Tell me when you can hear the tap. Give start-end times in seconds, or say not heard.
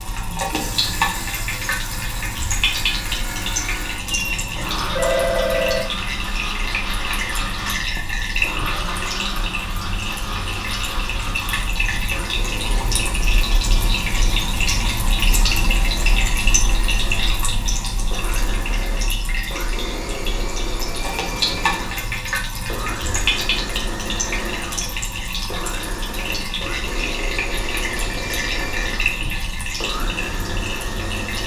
0.0-31.4.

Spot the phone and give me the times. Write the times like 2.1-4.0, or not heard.
4.1-5.8.